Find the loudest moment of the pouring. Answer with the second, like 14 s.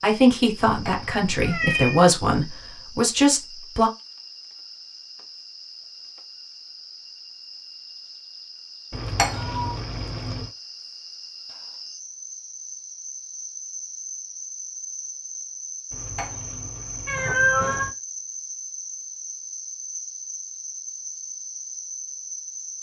9 s.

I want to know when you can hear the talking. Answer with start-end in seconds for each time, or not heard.
0.0-3.9.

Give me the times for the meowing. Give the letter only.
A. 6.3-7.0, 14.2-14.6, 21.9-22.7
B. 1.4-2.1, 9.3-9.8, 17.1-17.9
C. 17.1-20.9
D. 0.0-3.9
B.